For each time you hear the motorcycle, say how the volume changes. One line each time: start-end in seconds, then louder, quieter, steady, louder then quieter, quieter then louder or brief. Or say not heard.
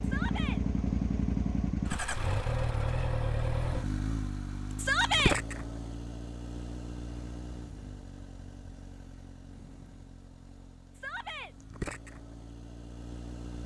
0.0-13.6 quieter then louder.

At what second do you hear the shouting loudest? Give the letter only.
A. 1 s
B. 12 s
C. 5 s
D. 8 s
C.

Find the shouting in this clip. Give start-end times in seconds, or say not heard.
0.0-0.6, 4.8-5.3, 10.9-11.6.